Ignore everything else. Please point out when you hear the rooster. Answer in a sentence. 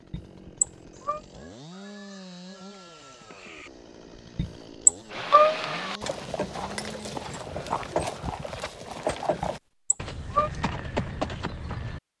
The rooster can be heard from 0.9 to 3.7 s.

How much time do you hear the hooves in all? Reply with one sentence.
The hooves can be heard for 7 seconds in total.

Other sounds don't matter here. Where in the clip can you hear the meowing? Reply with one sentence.
You can hear the meowing from 0.1 to 1.2 s, from 4.3 to 5.9 s and from 9.4 to 10.5 s.